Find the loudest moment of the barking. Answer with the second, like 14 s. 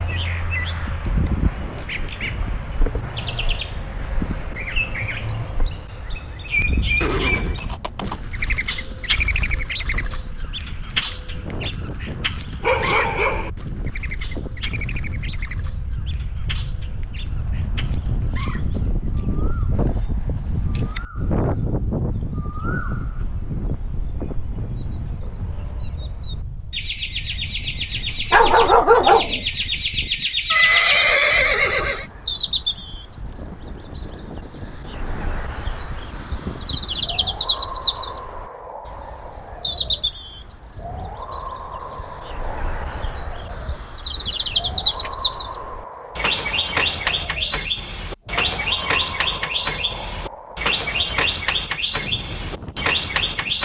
29 s.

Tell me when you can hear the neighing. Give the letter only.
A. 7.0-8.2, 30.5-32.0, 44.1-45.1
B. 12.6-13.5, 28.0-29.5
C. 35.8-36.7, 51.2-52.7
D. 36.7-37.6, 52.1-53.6
A.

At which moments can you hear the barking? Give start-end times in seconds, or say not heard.
12.6-13.5, 28.0-29.5.